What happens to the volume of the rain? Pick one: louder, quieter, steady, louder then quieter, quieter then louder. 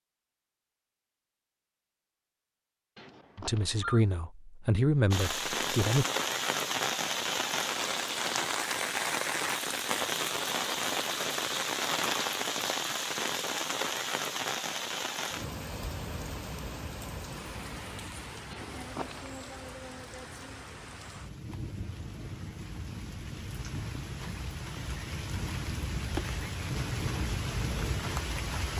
quieter then louder.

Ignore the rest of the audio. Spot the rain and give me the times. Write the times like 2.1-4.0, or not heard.
5.1-28.7.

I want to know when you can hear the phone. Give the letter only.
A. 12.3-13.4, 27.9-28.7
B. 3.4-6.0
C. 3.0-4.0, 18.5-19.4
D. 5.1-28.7
C.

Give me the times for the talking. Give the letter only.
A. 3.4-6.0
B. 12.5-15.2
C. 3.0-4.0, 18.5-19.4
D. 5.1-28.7
A.